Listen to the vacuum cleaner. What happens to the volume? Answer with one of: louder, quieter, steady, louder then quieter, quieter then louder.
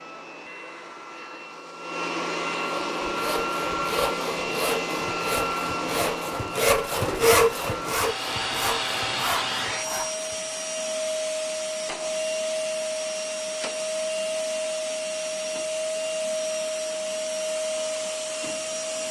steady.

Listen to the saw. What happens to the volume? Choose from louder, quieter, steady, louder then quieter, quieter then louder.
louder then quieter.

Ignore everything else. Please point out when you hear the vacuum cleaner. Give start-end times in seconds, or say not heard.
0.0-19.0.